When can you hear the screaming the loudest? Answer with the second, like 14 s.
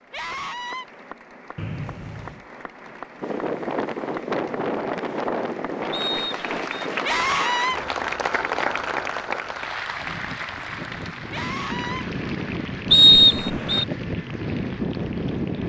7 s.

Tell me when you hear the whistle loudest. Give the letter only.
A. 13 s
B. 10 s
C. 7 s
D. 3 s
A.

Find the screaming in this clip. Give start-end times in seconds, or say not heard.
0.1-0.8, 7.0-7.8, 11.3-12.1.